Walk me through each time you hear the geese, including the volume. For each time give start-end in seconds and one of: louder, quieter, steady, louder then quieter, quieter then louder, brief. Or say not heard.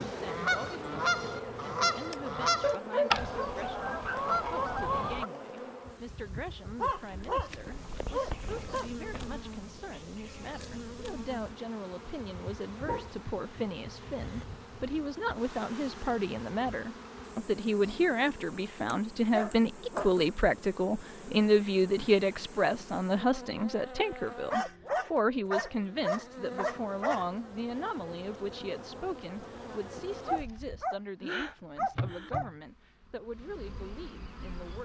0.0-5.3 steady.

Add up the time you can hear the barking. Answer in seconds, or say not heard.
12 s.